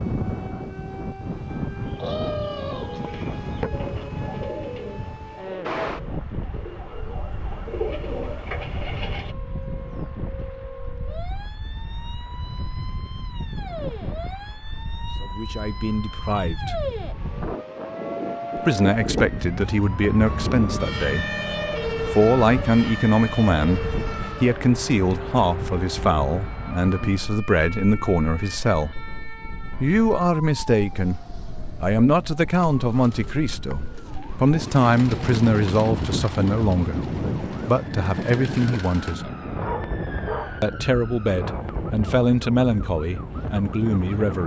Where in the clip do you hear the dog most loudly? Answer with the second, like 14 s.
40 s.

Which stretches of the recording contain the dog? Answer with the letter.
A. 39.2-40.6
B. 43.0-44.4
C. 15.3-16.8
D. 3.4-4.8
A.